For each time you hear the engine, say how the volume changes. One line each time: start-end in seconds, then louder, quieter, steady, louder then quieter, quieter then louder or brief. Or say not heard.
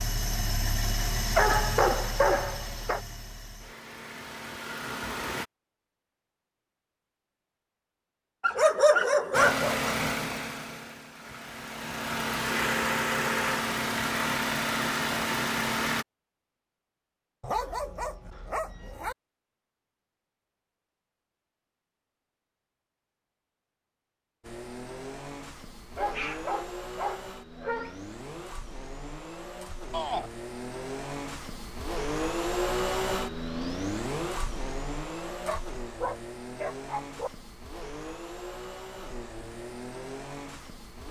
0.0-5.5 quieter then louder
9.3-16.1 quieter then louder
24.4-41.0 louder then quieter.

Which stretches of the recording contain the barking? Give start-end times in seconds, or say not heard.
1.4-3.0, 8.4-9.9, 17.4-19.1, 25.9-27.9, 35.2-37.3.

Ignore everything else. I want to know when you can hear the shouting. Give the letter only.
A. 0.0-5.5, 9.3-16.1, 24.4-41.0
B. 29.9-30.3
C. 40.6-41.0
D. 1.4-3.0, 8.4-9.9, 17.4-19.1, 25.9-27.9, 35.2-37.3
B.